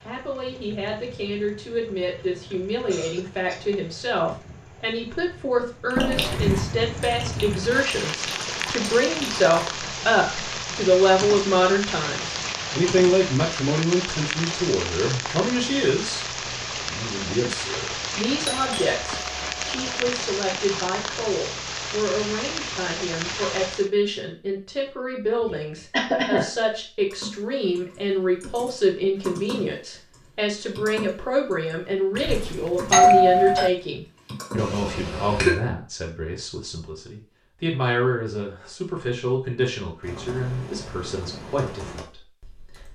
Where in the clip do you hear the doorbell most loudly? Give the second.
33 s.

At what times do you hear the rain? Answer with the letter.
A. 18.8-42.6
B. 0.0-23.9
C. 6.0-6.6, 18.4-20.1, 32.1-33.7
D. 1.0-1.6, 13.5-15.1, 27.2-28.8
B.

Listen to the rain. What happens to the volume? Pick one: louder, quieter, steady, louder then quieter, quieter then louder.
louder.